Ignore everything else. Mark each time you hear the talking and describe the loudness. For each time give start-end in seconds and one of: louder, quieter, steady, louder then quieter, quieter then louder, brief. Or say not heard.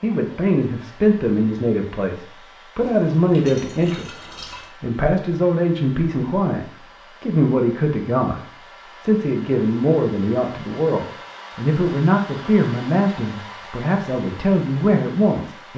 0.0-15.7 steady.